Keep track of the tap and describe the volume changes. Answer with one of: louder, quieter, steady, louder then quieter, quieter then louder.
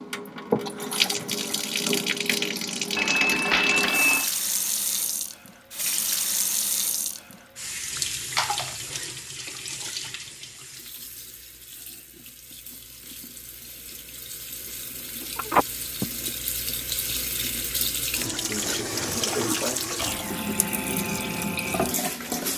quieter then louder.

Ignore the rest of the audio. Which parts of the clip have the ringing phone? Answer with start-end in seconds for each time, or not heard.
3.0-4.3, 8.3-8.8, 15.3-16.1.